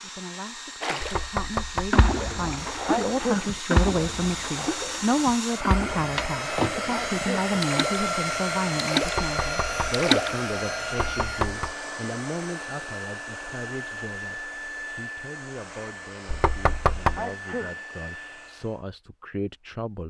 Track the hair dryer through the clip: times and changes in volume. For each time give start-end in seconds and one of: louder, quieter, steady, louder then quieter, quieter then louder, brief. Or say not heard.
0.0-18.8 louder then quieter.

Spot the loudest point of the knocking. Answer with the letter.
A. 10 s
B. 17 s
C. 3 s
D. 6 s
B.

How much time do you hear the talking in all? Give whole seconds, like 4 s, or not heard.
20 s.